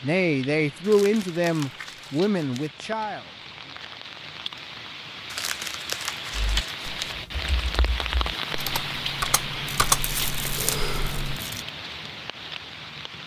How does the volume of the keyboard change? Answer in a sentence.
The loudness of the keyboard goes up, then down.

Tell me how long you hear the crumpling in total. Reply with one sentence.
The crumpling can be heard for 6 seconds in total.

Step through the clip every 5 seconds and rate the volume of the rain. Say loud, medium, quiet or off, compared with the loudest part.
medium, loud, loud.